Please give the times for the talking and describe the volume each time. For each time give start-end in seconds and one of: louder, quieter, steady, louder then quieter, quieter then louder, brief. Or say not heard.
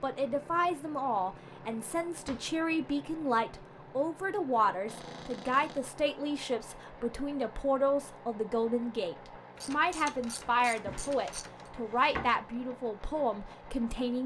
0.0-14.2 steady.